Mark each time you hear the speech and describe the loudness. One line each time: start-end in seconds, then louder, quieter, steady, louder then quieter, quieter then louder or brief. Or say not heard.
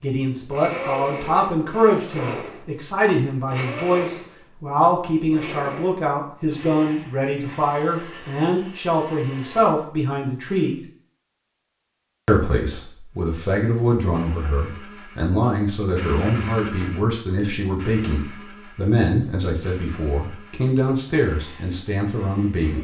0.0-10.8 steady
12.2-22.7 steady.